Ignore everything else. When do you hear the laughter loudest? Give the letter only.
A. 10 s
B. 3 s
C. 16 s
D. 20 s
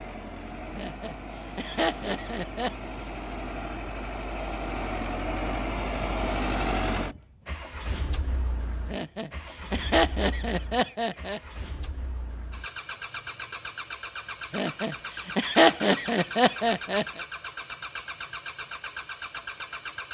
C.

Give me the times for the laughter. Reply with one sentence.
You can hear the laughter from 0.8 to 2.9 s, from 8.9 to 11.4 s and from 14.5 to 17.2 s.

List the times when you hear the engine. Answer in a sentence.
You can hear the engine from 0.0 to 20.0 s.